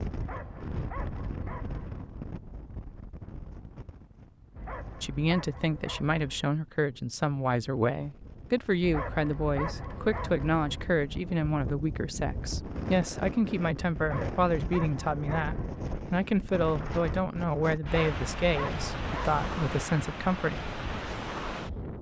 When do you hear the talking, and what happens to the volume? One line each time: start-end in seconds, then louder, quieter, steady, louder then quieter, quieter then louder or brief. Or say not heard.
5.0-20.6 steady.